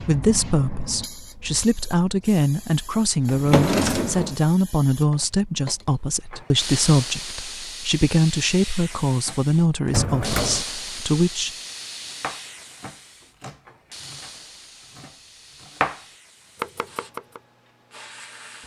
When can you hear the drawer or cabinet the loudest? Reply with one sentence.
The loudest moment of the drawer or cabinet is at 4 seconds.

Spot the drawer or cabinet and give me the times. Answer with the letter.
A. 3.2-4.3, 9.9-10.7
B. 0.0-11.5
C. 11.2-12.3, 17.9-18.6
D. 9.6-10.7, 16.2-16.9
A.